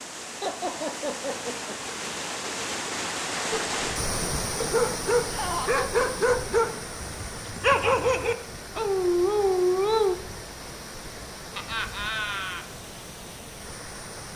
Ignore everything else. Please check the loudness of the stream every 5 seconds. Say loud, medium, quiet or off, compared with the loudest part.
loud, medium, medium.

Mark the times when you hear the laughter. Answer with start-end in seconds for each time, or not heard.
0.4-1.8, 5.2-5.8, 11.6-12.7.